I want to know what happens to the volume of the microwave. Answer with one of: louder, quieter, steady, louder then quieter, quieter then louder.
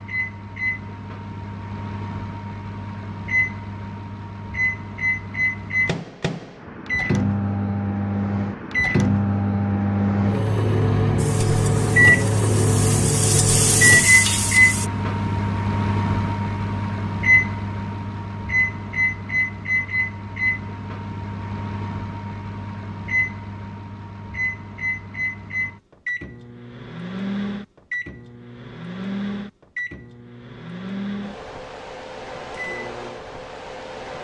louder then quieter.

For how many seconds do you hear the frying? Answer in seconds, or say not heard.
4 s.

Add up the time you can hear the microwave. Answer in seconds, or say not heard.
34 s.